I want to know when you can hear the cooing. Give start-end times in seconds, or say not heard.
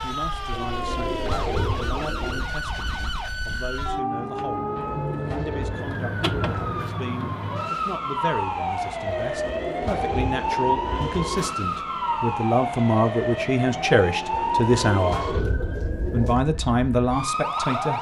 0.5-2.5, 4.7-7.0, 9.1-11.6, 14.3-16.4.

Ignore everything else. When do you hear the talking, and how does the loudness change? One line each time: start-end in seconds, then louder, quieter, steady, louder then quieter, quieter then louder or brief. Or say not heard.
0.0-15.2 louder
16.1-17.9 brief.